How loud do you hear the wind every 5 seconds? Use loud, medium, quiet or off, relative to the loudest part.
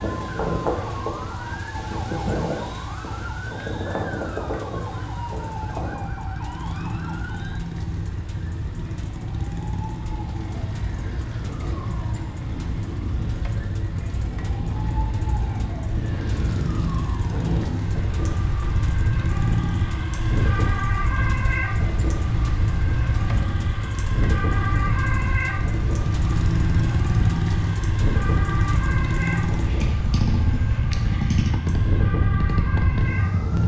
loud, medium, medium, loud, loud, loud, loud.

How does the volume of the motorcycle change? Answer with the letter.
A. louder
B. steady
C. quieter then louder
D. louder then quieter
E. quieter
A.